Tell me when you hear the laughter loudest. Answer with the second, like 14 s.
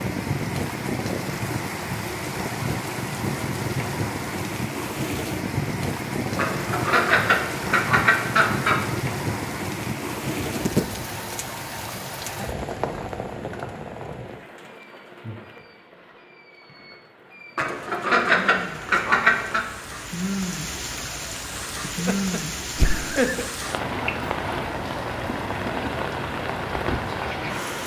23 s.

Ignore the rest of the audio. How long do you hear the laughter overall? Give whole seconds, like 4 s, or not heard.
2 s.